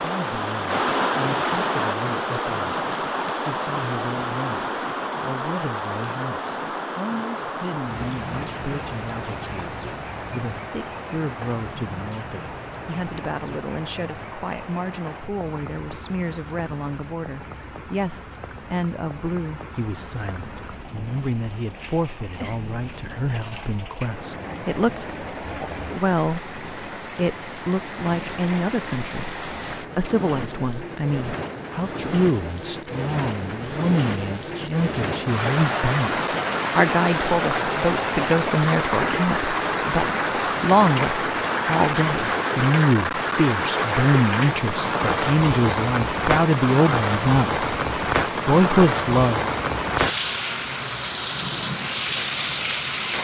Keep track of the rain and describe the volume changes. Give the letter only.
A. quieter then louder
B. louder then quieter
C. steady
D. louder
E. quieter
A.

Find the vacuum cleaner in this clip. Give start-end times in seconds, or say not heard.
not heard.